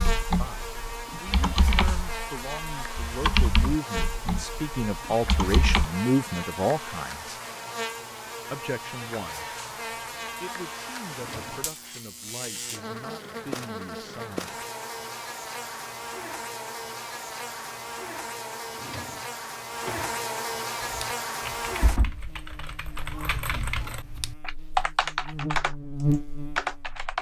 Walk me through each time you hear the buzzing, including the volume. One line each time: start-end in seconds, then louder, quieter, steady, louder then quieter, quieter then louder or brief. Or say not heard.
0.0-27.1 steady.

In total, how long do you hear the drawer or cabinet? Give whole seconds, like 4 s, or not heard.
2 s.